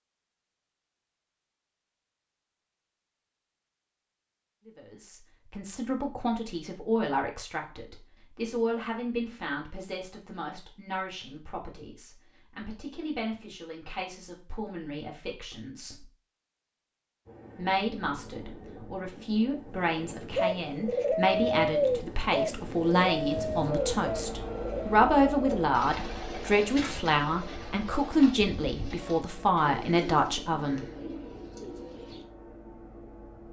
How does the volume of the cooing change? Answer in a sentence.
The loudness of the cooing goes down.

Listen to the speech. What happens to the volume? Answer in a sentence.
The loudness of the speech goes down, then up.